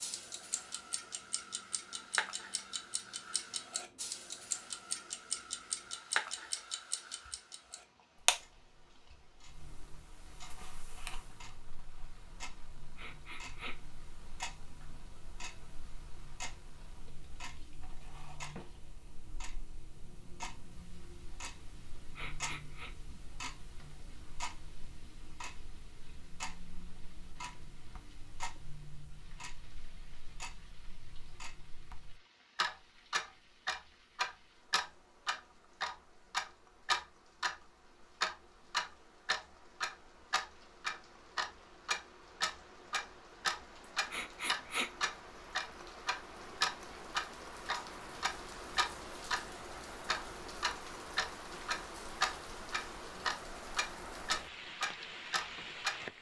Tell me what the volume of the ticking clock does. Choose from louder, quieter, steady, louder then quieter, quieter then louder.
quieter then louder.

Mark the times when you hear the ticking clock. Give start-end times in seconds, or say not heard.
0.0-56.0.